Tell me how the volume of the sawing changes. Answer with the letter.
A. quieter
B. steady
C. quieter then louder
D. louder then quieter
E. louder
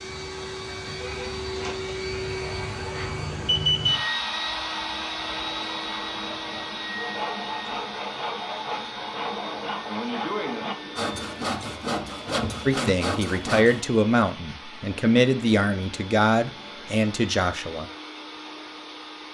E.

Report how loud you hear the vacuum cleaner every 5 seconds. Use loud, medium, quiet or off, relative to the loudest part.
loud, loud, medium, medium.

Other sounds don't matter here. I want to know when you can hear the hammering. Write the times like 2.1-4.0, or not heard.
not heard.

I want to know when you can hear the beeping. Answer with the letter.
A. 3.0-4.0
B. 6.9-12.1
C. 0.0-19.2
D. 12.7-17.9
A.